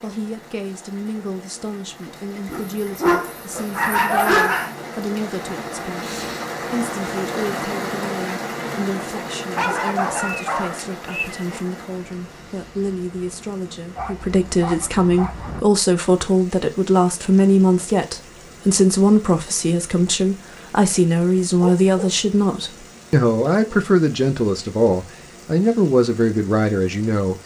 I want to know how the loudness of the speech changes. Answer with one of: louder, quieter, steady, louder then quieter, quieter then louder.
louder.